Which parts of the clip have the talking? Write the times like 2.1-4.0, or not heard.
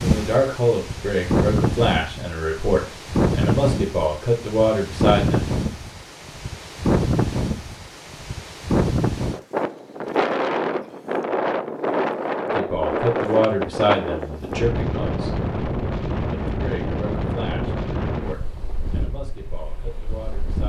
0.0-5.5, 12.6-15.3, 16.5-20.6.